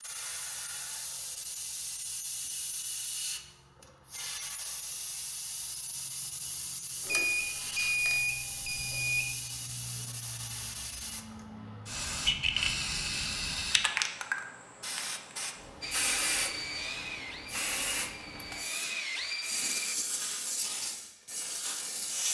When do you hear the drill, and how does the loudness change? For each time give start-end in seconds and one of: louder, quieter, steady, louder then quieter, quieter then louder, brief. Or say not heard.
15.8-19.9 quieter then louder.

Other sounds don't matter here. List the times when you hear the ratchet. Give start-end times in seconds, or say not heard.
not heard.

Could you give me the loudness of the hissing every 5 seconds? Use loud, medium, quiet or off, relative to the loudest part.
medium, medium, loud, loud, loud.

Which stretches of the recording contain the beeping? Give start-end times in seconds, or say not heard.
7.0-9.2.